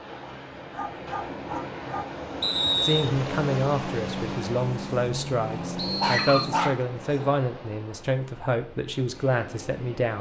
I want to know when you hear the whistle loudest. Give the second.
3 s.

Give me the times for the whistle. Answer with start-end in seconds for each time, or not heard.
2.4-3.1, 5.8-6.5.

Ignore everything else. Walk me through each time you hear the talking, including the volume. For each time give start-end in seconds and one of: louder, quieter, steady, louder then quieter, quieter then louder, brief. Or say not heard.
2.8-10.1 steady.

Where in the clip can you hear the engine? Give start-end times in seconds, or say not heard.
3.4-6.8.